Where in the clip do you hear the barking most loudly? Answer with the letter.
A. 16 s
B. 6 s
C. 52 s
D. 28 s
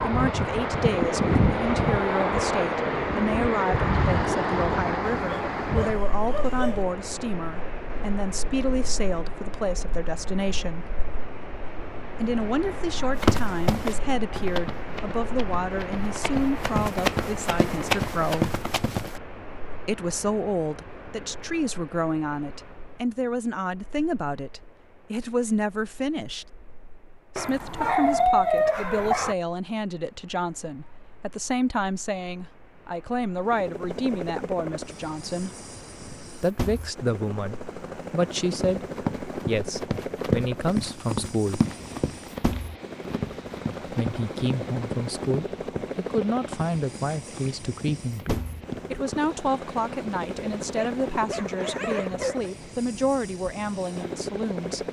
D.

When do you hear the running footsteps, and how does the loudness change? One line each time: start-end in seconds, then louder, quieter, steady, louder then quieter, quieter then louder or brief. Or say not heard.
13.2-19.2 quieter then louder
38.5-49.3 quieter.